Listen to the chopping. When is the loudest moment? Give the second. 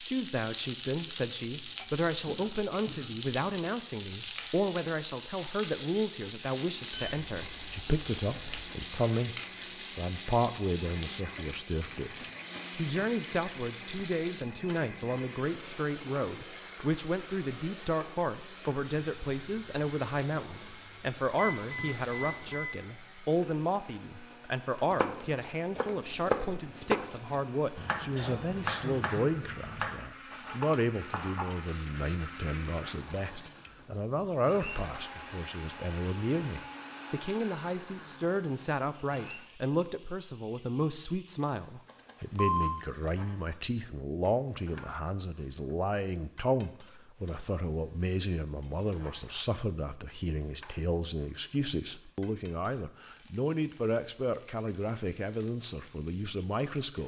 26 s.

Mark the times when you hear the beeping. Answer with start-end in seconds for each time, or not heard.
6.9-8.7, 21.4-22.8, 41.9-42.9.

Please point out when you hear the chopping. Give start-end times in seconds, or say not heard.
24.9-31.4.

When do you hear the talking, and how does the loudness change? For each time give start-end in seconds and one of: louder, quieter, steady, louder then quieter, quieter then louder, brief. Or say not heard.
0.0-57.0 steady.